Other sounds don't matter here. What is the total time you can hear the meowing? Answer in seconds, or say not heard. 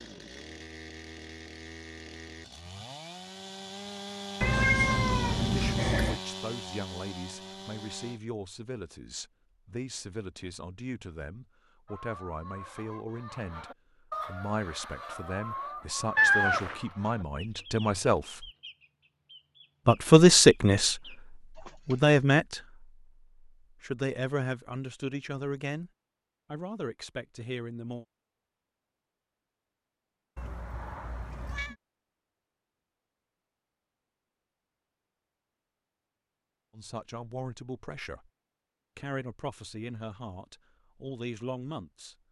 4 s.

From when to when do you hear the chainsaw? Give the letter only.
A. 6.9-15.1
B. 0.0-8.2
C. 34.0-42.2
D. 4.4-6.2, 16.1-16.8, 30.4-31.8
B.